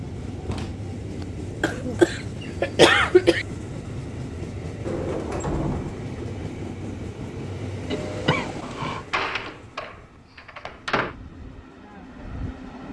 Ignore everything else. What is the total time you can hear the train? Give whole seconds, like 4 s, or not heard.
13 s.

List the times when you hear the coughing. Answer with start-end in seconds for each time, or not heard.
1.6-3.5, 7.9-9.1.